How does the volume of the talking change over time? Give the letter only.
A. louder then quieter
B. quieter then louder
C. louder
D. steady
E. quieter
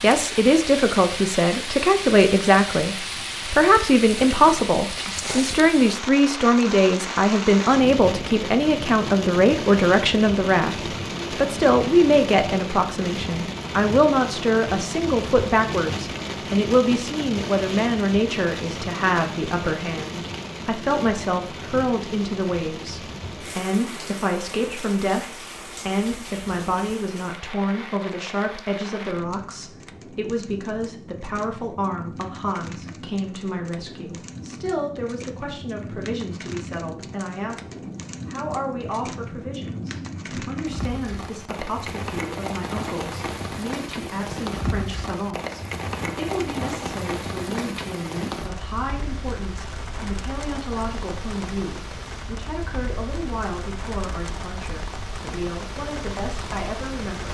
E.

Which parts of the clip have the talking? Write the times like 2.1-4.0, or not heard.
0.0-57.2.